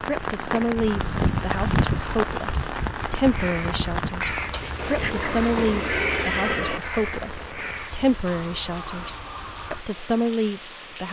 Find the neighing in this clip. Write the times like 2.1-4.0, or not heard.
4.8-6.8.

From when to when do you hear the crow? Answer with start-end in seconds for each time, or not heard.
3.1-9.8.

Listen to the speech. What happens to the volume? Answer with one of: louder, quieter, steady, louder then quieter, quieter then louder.
steady.